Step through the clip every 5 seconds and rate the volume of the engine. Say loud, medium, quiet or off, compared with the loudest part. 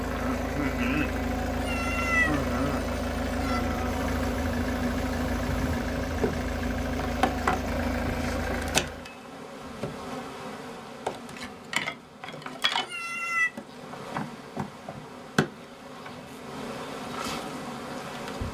loud, loud, off, off.